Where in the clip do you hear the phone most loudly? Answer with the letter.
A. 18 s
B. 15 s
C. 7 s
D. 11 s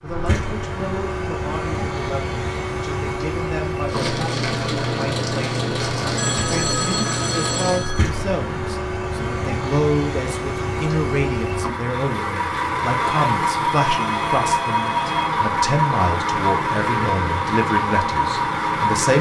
C.